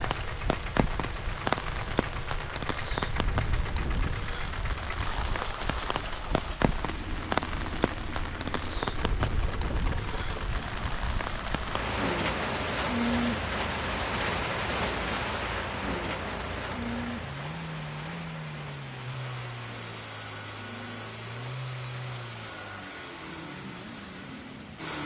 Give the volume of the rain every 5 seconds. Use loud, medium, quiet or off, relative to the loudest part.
loud, loud, loud, medium, quiet.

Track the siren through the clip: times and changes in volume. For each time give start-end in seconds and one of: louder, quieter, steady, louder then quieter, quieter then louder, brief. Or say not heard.
not heard.